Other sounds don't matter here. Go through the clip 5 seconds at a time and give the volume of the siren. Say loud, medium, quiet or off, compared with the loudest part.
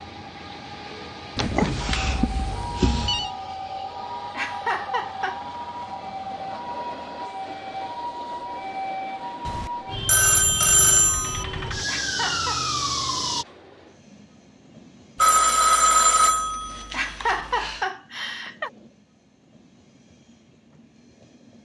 medium, medium, loud, off, off.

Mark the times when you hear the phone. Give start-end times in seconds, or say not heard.
1.4-3.3, 9.4-11.4, 15.2-17.9.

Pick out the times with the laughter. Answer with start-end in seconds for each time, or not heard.
4.3-5.4, 11.8-12.7, 16.9-18.7.